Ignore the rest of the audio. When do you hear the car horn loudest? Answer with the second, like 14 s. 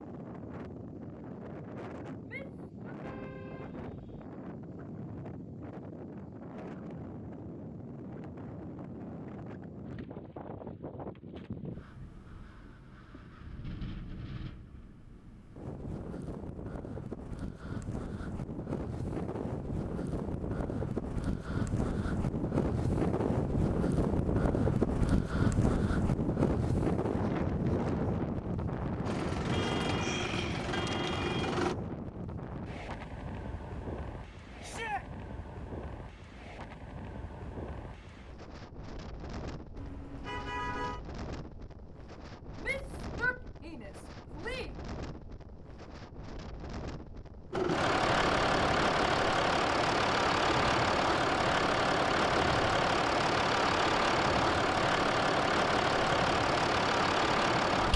41 s.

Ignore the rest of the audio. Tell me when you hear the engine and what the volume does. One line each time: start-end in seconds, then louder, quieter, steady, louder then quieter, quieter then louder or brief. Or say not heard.
29.1-31.8 brief
47.5-57.9 steady.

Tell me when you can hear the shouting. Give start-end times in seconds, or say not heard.
2.2-3.0, 34.6-35.0, 42.6-44.7.